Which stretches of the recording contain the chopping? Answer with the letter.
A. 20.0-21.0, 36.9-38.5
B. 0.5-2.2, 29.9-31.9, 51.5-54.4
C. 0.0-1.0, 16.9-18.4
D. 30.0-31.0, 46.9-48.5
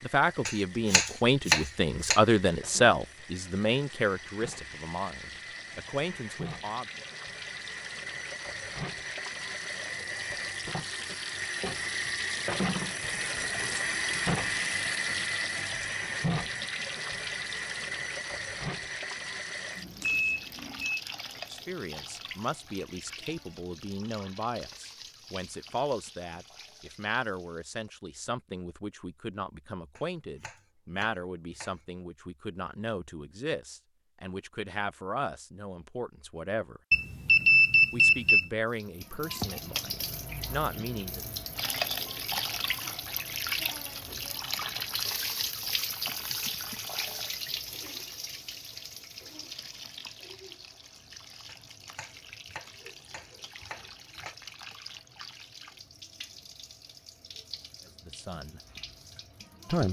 B.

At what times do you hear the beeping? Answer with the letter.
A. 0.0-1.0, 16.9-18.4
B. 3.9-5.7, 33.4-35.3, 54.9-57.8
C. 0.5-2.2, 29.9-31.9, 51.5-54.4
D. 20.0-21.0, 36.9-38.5
D.